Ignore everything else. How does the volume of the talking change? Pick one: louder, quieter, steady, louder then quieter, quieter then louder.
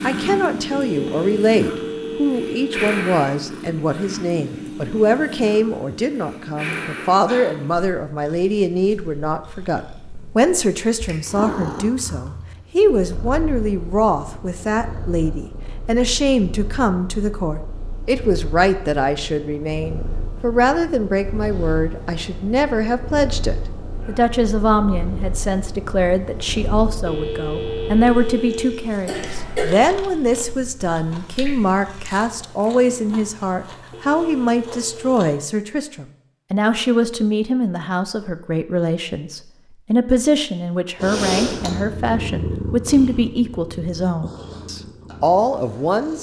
steady.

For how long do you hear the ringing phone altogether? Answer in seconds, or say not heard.
5 s.